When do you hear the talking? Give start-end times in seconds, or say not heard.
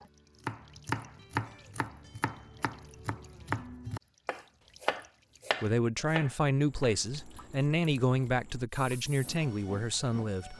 5.6-10.5.